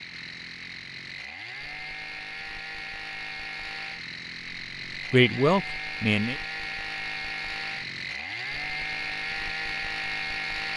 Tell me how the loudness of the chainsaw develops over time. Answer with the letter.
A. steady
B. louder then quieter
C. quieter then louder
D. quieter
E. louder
E.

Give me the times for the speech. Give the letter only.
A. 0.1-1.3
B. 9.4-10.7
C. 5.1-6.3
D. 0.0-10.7
C.